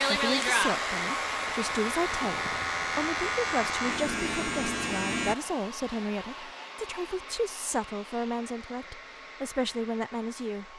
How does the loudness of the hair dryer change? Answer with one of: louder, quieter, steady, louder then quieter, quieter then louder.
quieter.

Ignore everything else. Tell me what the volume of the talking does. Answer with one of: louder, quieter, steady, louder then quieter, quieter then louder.
steady.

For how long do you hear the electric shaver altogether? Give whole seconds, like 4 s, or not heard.
5 s.